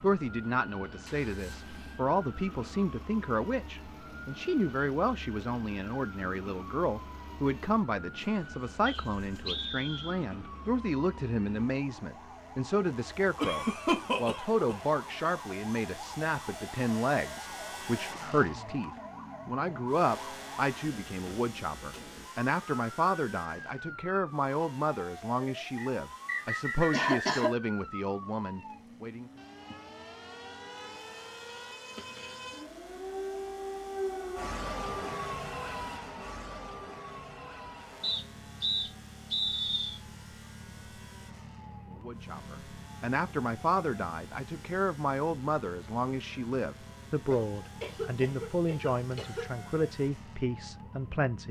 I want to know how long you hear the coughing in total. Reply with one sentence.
You can hear the coughing for 4 seconds altogether.